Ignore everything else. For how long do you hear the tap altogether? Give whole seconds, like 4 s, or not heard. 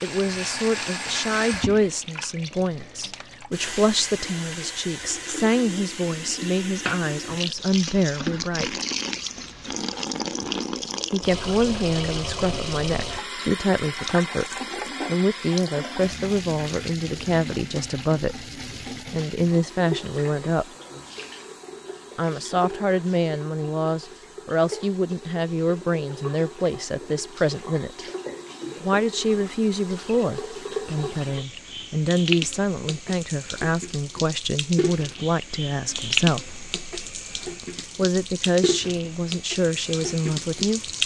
41 s.